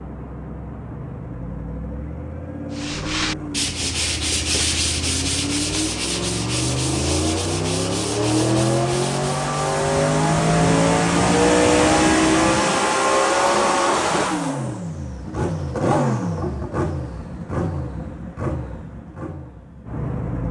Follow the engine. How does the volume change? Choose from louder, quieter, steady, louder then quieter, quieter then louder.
louder then quieter.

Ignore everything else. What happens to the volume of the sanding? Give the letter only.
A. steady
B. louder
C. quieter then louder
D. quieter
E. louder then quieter
D.